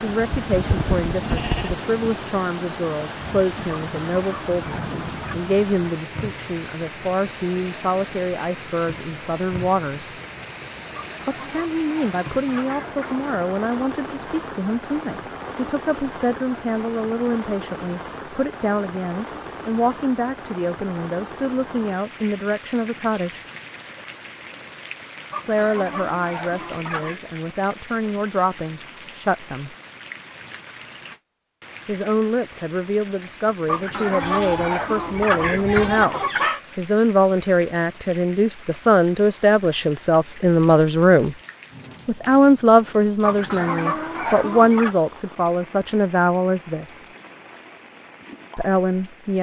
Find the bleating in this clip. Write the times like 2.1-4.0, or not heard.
0.3-1.8, 34.2-36.0.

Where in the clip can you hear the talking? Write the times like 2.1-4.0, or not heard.
0.0-10.2, 11.2-23.4, 25.4-29.8, 31.9-41.4, 42.0-47.0, 48.5-49.3.